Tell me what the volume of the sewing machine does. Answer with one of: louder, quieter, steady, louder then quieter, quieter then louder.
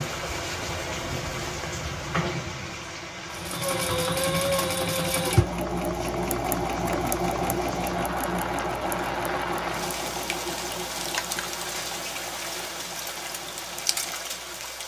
quieter.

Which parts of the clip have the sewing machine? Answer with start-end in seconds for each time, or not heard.
3.3-14.8.